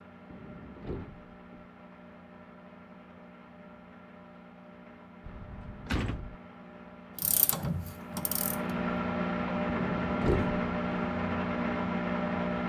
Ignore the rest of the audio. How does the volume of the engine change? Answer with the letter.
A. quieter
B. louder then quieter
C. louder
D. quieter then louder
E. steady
C.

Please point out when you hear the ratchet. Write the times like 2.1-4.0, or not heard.
7.2-8.8.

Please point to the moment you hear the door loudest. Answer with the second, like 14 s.
10 s.